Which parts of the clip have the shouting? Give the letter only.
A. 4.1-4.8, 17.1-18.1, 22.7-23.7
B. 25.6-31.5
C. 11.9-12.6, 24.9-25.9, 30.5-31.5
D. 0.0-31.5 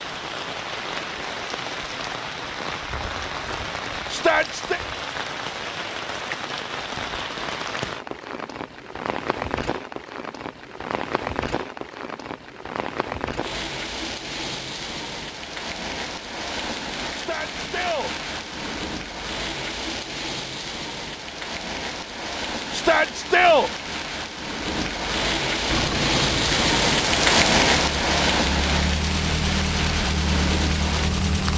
A.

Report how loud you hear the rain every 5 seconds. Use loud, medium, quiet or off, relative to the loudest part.
medium, medium, medium, medium, medium, loud, medium.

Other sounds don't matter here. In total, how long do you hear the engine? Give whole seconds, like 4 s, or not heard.
6 s.